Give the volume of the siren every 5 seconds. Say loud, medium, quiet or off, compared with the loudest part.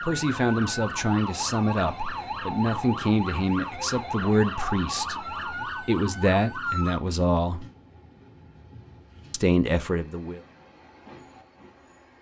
loud, loud, off.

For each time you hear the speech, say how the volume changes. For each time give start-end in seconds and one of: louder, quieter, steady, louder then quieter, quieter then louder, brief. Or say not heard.
0.0-7.7 quieter then louder
9.3-10.4 brief.